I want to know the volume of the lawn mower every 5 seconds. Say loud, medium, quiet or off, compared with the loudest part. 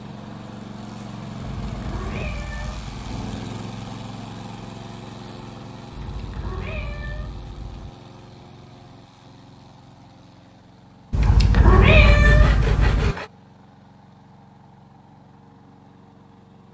loud, medium, quiet, quiet.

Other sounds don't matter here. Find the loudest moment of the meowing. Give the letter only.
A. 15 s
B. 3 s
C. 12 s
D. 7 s
C.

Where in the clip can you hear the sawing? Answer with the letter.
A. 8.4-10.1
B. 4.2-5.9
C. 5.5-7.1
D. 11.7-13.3
D.